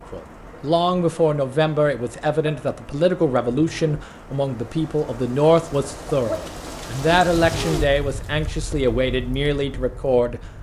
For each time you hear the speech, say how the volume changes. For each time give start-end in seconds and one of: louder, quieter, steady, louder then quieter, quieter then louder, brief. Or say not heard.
0.1-10.4 steady.